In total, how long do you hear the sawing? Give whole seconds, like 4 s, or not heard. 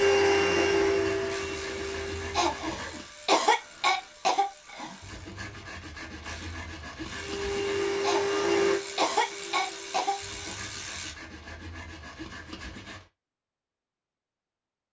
8 s.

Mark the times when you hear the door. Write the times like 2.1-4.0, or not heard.
not heard.